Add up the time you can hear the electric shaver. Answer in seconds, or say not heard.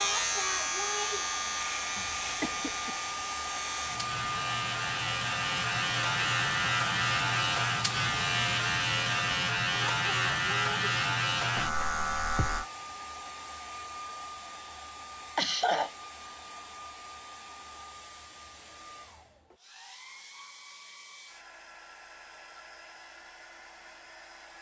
13 s.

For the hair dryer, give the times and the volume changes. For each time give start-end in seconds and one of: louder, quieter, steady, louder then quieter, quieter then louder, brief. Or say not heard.
0.0-24.5 quieter.